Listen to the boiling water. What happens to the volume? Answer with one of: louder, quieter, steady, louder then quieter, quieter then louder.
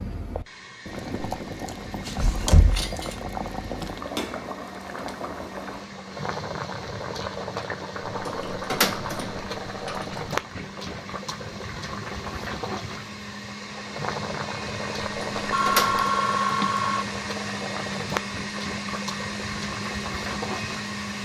steady.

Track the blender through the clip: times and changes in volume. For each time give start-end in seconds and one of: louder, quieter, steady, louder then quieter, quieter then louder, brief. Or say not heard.
0.2-21.2 louder.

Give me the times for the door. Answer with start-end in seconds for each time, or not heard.
1.6-3.1, 8.1-10.4, 15.2-16.1.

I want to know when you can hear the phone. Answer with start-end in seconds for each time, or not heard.
15.5-17.1.